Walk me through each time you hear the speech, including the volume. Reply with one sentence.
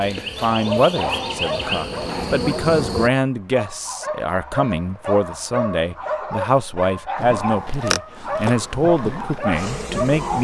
You can hear the speech from 0.0 to 10.3 s, at a steady volume.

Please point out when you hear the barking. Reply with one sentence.
You can hear the barking from 0.5 to 10.3 s.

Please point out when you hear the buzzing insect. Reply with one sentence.
You can hear the buzzing insect from 0.0 to 3.1 s and from 7.2 to 10.3 s.